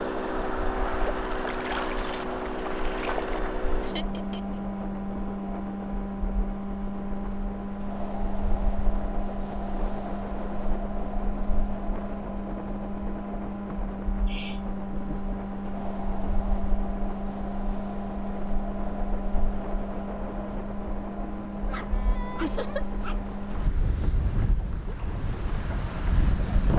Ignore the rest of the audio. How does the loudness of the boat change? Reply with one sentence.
The volume of the boat goes down.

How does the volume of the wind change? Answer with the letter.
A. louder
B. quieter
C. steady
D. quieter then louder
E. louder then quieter
A.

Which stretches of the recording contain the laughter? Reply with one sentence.
You can hear the laughter from 3.8 to 4.6 s, from 14.2 to 15.4 s and from 22.4 to 22.9 s.